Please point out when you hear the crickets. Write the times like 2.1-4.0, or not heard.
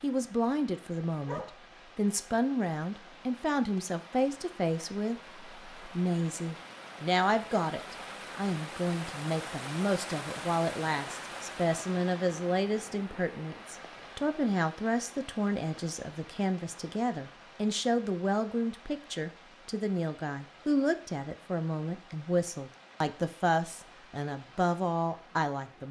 not heard.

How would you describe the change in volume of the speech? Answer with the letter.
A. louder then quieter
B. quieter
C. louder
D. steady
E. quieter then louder
D.